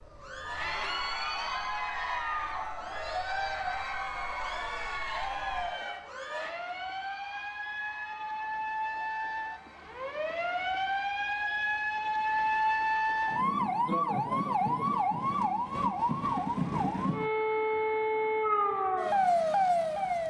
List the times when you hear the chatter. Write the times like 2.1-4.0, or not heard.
0.1-13.4.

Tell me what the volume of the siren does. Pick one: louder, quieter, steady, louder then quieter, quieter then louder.
louder.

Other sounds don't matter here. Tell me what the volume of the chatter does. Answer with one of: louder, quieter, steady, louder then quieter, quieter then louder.
quieter.